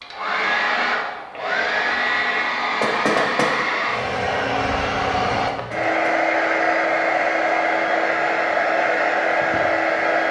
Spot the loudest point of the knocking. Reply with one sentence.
The loudest moment of the knocking is at 3 seconds.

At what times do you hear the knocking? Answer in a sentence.
You can hear the knocking from 2.8 to 3.5 s and from 5.5 to 6.2 s.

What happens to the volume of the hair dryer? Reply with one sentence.
The loudness of the hair dryer stays about the same.